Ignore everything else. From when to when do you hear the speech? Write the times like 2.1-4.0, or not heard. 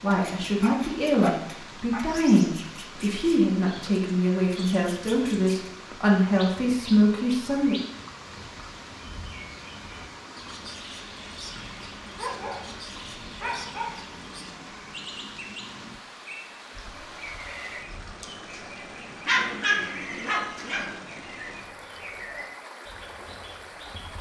0.0-7.8.